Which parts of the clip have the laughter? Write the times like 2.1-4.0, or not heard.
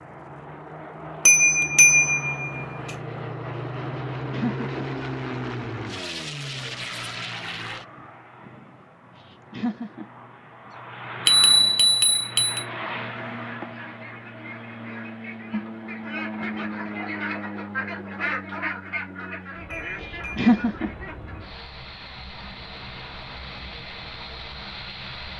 4.3-4.7, 9.2-10.1, 20.4-20.9.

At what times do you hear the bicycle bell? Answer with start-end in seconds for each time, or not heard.
1.2-2.6, 11.2-12.7, 19.7-20.5.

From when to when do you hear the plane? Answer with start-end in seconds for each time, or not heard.
0.0-25.3.